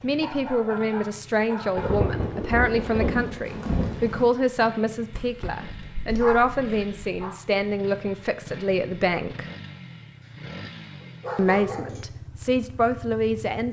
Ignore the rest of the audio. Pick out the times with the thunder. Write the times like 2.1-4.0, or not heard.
1.8-4.3.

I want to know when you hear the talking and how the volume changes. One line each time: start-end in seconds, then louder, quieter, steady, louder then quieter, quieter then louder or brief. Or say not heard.
0.0-9.4 steady
11.3-13.6 brief.